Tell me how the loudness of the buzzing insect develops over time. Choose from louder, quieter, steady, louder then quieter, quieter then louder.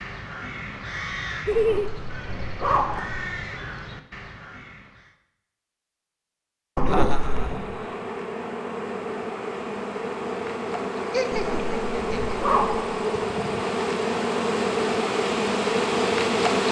louder.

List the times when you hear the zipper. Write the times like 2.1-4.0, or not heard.
1.5-3.3, 6.8-7.6, 11.3-13.0.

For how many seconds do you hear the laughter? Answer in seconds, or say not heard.
3 s.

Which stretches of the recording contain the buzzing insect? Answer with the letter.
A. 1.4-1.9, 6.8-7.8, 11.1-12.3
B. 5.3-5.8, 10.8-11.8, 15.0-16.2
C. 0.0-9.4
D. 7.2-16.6
D.